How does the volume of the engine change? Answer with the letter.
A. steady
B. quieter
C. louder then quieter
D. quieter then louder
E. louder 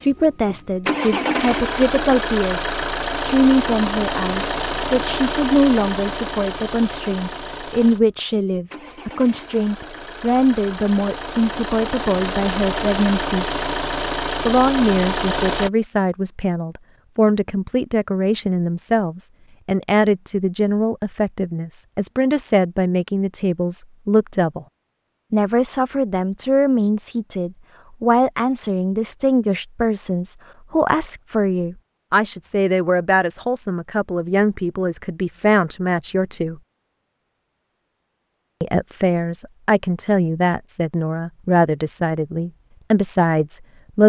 D.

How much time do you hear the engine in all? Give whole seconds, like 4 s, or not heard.
16 s.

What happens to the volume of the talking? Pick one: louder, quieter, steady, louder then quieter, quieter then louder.
steady.